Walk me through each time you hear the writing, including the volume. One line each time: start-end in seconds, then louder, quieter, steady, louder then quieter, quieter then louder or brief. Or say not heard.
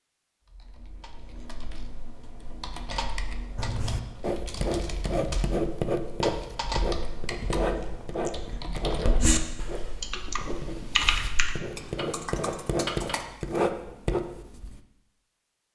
3.5-14.8 quieter then louder.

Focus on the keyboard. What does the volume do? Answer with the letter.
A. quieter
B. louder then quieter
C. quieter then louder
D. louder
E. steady
D.